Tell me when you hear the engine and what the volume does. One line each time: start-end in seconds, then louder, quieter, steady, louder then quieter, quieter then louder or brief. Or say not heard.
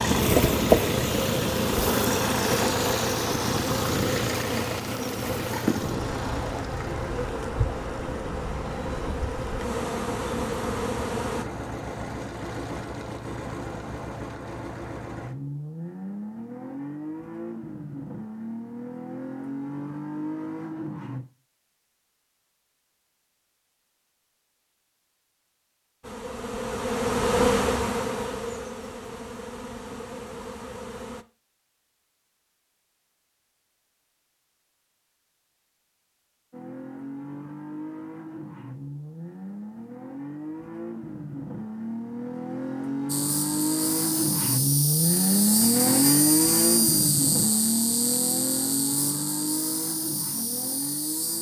0.0-21.2 quieter
36.5-51.3 louder then quieter.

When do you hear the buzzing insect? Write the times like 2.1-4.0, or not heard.
0.0-11.4, 26.0-31.2, 43.0-51.3.